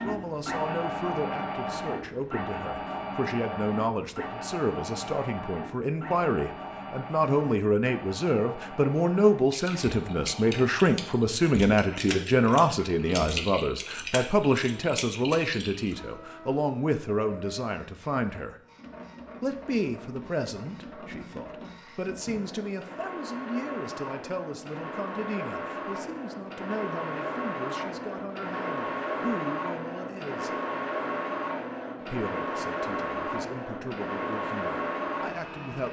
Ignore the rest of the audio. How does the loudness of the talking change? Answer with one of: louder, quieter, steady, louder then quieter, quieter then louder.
louder then quieter.